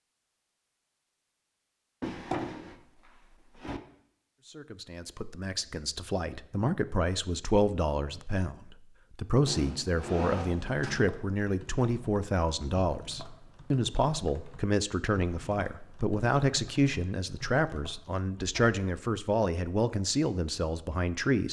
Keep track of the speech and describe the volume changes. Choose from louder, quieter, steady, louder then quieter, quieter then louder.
steady.